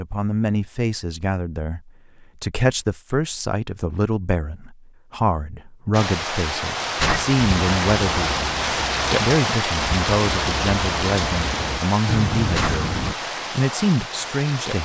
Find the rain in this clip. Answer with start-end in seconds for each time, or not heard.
5.9-14.8.